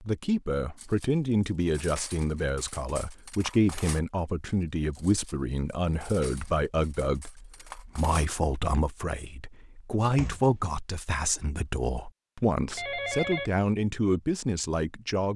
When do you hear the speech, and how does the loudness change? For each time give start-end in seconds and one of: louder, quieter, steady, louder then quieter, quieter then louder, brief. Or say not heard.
0.0-15.3 steady.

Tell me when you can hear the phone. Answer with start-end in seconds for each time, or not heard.
12.7-13.5.